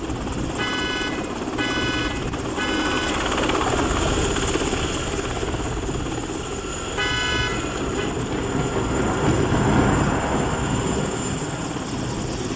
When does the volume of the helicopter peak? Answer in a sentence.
The volume of the helicopter peaks at 4 seconds.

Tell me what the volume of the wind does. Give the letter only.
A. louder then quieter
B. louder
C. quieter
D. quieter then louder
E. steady
B.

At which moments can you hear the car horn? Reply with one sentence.
You can hear the car horn from 0.6 to 3.3 s and from 7.0 to 8.1 s.